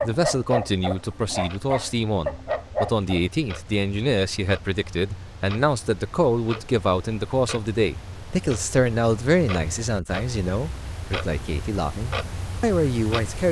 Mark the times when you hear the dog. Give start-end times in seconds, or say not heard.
0.0-3.2.